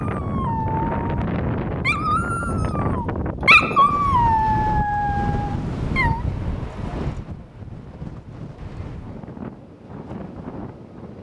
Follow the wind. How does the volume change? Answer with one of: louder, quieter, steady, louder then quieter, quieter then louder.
quieter.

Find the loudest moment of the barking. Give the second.
4 s.